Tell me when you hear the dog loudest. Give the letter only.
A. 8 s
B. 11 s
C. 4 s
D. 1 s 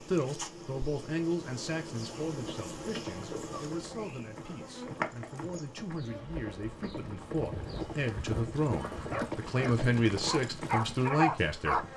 B.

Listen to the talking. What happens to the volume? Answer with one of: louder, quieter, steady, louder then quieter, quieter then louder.
quieter then louder.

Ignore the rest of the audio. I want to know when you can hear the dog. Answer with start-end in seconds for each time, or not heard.
7.5-11.9.